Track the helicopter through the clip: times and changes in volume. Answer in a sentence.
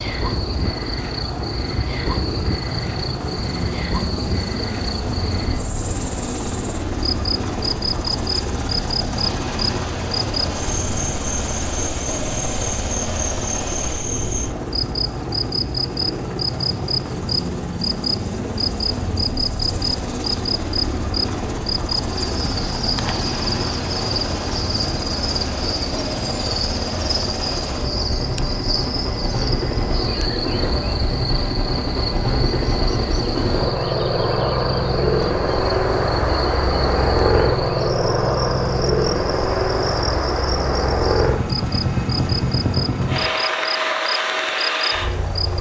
The helicopter can be heard from 0.0 to 45.5 s, getting louder.